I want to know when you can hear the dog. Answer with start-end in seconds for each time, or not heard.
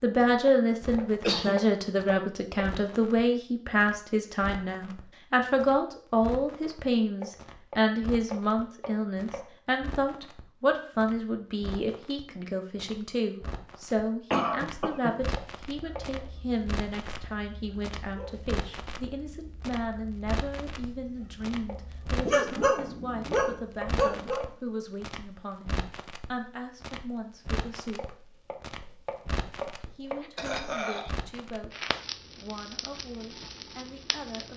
15.7-24.4.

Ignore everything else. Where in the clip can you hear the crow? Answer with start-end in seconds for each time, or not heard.
not heard.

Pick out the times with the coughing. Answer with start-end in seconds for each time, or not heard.
1.1-1.6, 14.3-15.2, 30.2-31.1.